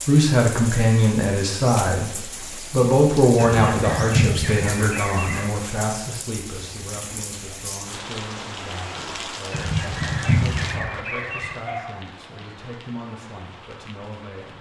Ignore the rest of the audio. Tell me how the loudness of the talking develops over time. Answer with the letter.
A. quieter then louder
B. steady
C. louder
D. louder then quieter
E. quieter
E.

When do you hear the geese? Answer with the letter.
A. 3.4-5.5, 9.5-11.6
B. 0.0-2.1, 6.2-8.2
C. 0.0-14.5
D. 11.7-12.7
A.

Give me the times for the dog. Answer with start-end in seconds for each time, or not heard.
11.7-12.7.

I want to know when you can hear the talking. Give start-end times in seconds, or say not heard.
0.0-14.5.